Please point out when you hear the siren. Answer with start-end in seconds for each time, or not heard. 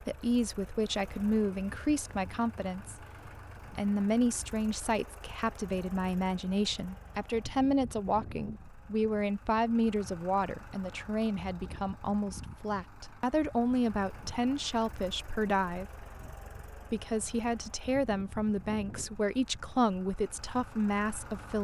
not heard.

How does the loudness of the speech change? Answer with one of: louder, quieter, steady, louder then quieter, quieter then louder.
steady.